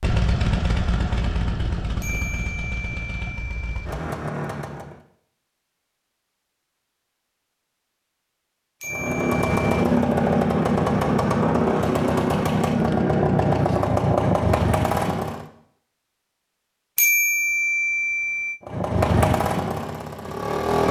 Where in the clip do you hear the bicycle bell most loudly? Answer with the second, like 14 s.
17 s.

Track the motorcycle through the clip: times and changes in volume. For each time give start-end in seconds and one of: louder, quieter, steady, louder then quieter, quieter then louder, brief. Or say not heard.
0.0-5.0 quieter then louder
8.8-15.4 steady
18.6-20.8 brief.